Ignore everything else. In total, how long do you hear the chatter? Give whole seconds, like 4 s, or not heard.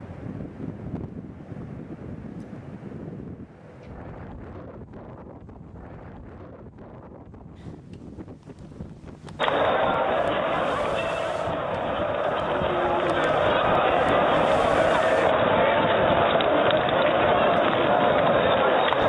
10 s.